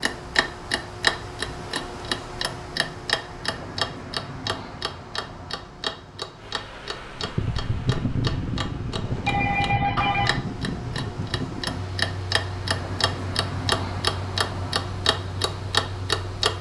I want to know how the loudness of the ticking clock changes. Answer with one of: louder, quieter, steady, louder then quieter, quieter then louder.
quieter then louder.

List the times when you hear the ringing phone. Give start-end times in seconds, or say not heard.
9.2-10.3.